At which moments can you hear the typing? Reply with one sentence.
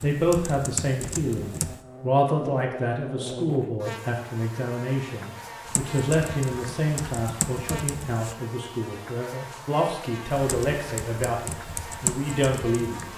The typing can be heard from 0.0 to 1.9 s, from 5.7 to 8.3 s and from 10.3 to 13.1 s.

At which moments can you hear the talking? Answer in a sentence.
You can hear the talking from 0.0 to 13.1 s.